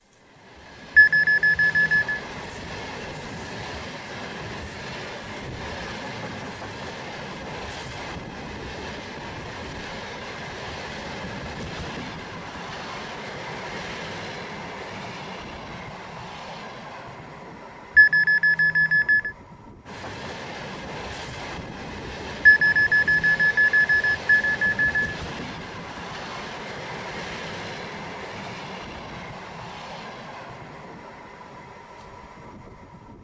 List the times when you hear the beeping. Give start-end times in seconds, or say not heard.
0.9-2.2, 17.9-19.3, 22.4-25.1.